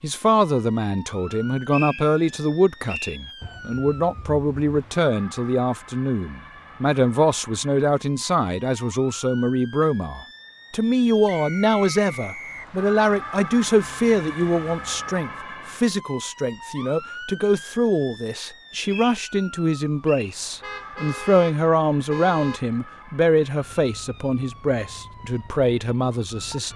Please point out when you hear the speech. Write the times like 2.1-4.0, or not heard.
0.0-26.7.